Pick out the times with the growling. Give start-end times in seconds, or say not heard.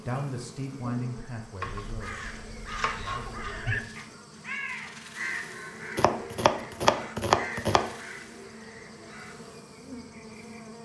3.1-4.2.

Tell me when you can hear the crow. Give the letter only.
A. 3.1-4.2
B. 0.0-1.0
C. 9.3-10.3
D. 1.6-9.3
D.